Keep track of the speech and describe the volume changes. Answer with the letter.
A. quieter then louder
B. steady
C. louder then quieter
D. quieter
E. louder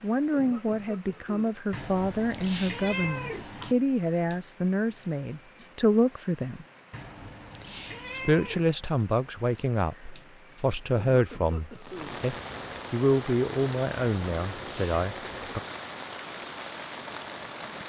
B.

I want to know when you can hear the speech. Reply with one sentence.
The speech can be heard from 0.0 to 6.7 s and from 8.2 to 15.6 s.